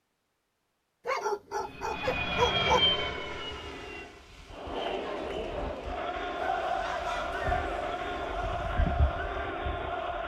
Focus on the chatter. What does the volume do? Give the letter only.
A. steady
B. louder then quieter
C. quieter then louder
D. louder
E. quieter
A.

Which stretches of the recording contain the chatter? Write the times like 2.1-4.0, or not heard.
4.5-10.2.